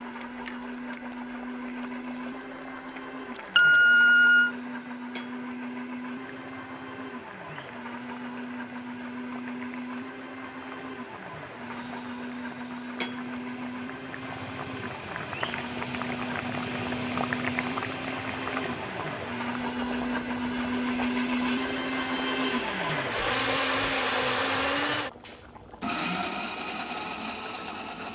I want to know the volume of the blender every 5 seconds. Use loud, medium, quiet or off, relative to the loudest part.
medium, medium, medium, medium, loud, medium.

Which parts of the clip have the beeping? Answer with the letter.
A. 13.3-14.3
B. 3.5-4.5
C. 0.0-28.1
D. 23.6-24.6
B.